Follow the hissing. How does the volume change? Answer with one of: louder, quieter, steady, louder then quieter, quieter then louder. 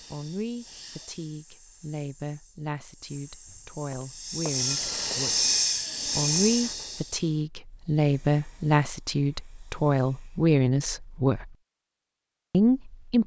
louder then quieter.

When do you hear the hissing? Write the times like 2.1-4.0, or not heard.
0.0-10.6.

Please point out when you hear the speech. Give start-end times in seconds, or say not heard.
0.1-5.5, 6.0-11.6, 12.5-13.2.